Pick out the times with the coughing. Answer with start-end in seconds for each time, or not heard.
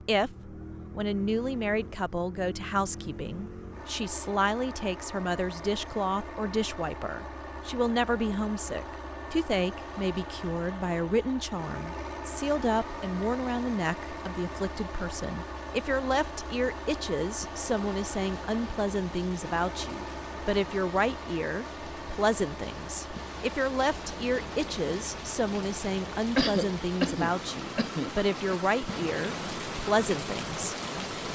26.4-28.6.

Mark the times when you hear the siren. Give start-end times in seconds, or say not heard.
not heard.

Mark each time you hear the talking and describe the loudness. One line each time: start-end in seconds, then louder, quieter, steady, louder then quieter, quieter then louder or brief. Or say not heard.
0.1-31.1 steady.